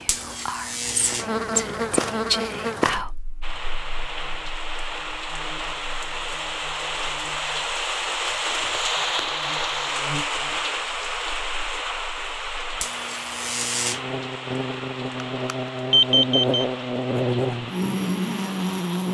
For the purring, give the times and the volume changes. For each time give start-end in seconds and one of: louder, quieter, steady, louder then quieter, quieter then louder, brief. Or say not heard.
not heard.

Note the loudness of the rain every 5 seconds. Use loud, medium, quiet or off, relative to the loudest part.
medium, loud, loud, medium.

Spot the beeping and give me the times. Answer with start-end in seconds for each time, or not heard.
15.4-16.6.